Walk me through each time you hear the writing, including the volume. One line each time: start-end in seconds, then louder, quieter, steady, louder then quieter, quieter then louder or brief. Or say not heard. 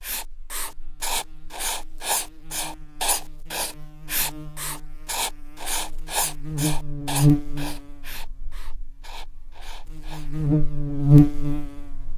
0.0-10.3 quieter.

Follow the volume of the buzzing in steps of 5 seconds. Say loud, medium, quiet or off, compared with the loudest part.
quiet, medium, loud.